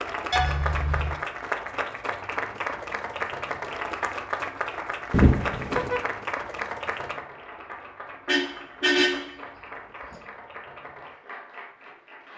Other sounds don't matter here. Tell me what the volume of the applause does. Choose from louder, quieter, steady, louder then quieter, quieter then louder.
quieter.